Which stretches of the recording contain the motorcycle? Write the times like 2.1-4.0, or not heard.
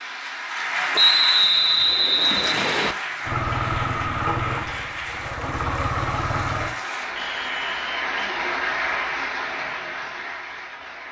3.2-6.8.